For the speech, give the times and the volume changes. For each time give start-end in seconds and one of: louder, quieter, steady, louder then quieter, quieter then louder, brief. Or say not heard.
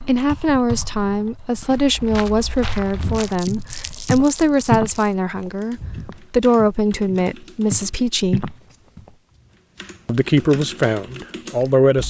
0.0-8.4 steady
10.1-12.0 brief.